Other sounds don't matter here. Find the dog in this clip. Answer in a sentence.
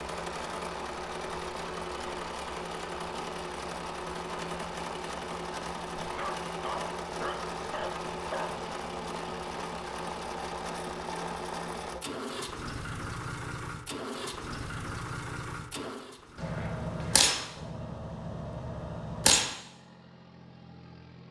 You can hear the dog from 6.0 to 8.7 s.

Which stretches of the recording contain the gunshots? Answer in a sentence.
You can hear the gunshots from 16.4 to 19.5 s.